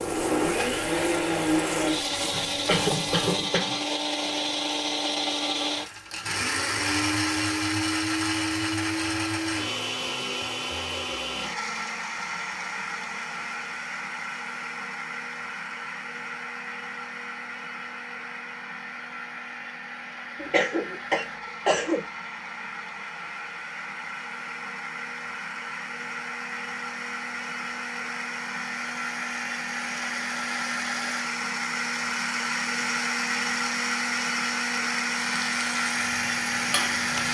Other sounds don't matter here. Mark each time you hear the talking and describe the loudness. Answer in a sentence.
The talking can't be heard in this clip.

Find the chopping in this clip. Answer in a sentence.
You can't hear the chopping here.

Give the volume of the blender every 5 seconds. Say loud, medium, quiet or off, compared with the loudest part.
loud, loud, medium, medium, medium, medium, loud, loud.